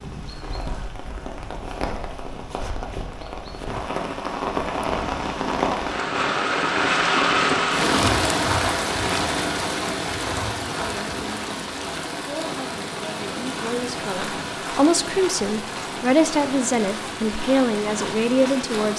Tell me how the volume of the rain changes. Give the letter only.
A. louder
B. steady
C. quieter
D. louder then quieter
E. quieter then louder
D.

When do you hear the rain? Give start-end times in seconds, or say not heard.
0.0-18.9.